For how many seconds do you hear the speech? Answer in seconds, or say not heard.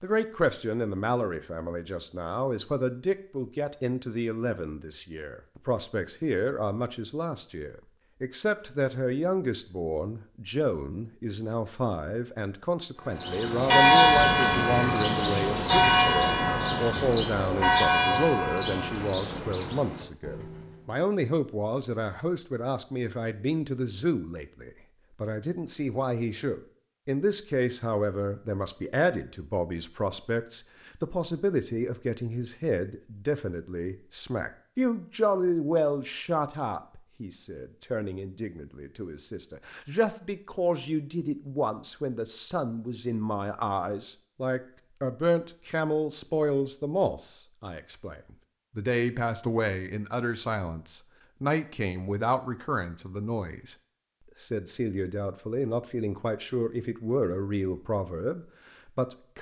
59 s.